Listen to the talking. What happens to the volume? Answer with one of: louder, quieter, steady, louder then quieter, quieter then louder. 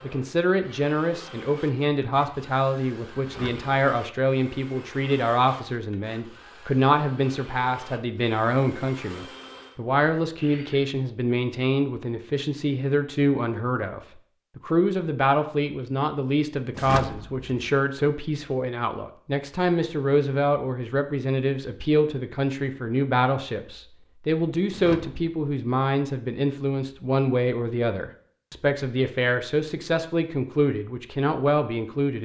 steady.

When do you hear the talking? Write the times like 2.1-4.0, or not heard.
0.0-32.2.